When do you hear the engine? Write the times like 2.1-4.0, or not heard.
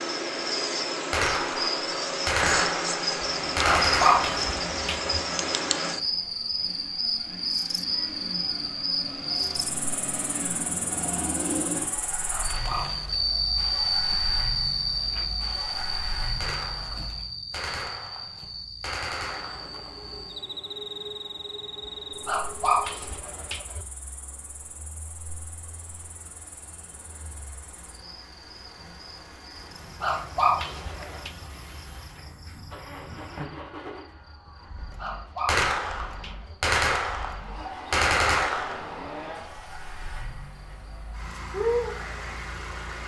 3.2-17.2, 19.2-43.0.